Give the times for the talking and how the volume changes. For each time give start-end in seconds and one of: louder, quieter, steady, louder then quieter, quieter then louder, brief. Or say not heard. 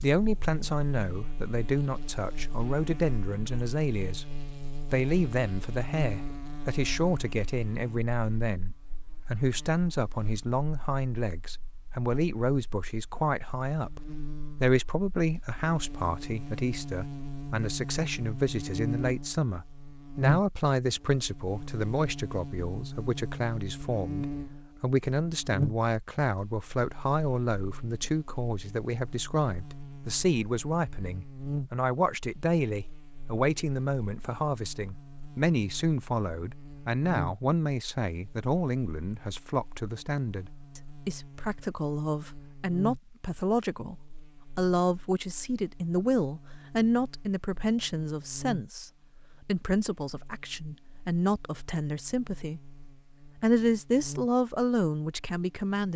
0.0-52.6 steady
53.4-55.9 brief.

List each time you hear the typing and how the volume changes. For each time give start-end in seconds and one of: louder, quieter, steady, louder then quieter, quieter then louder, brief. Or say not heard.
not heard.